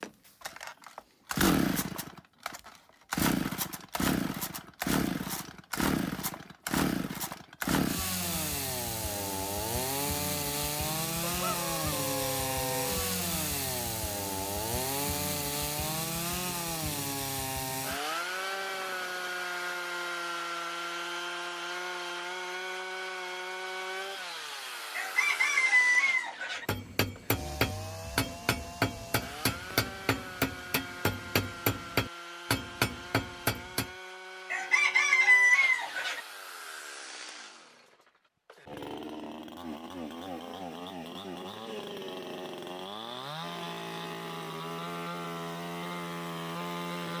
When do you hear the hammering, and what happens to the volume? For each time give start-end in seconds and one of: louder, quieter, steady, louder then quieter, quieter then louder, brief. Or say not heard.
26.6-33.9 steady.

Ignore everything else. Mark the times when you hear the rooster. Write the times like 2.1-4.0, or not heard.
11.2-13.2, 24.9-26.6, 34.5-36.2.